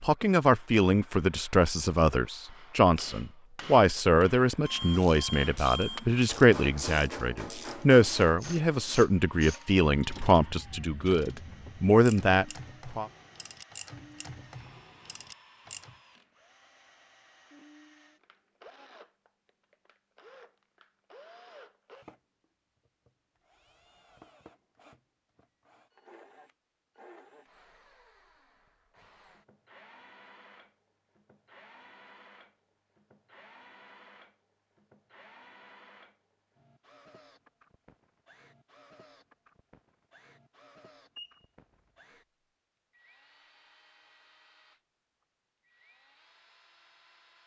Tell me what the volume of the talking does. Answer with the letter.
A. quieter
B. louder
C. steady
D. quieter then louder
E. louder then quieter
C.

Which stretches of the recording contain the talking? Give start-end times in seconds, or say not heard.
0.0-13.1.